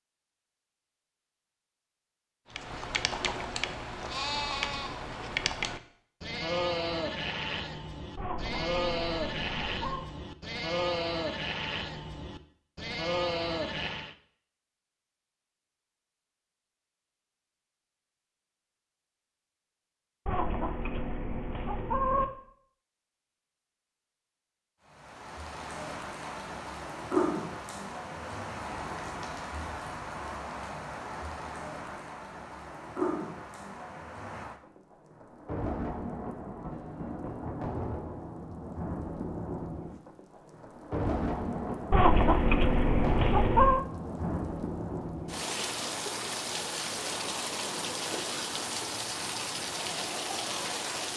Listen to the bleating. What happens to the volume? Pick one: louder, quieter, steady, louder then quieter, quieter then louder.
steady.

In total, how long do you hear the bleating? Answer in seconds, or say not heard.
12 s.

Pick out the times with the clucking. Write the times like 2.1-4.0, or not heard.
8.2-10.1, 20.2-22.2, 41.9-43.9.